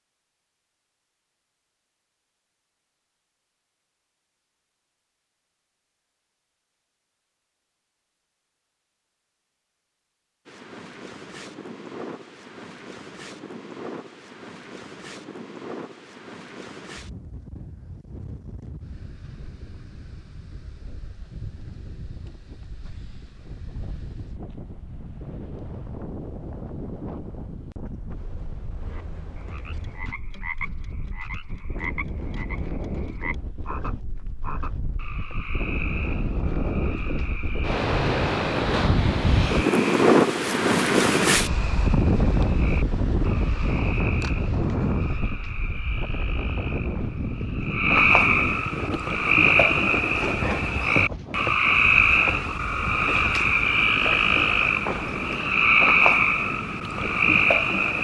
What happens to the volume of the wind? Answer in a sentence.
The loudness of the wind goes up, then down.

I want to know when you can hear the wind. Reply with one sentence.
You can hear the wind from 10.4 to 58.0 s.